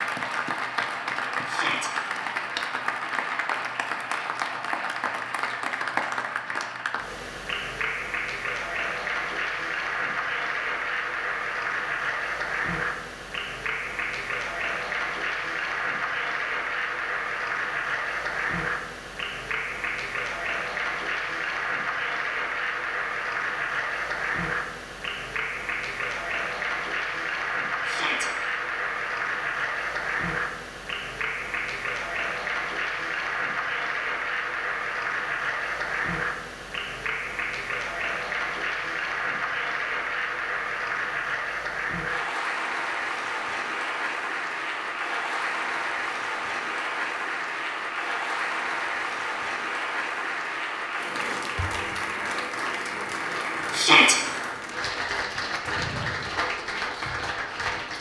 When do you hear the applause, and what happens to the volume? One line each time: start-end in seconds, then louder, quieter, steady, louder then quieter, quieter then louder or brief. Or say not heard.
0.0-57.9 steady.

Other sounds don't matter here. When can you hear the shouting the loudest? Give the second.
54 s.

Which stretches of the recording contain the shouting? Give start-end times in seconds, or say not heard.
1.4-1.9, 27.9-28.3, 53.7-54.1.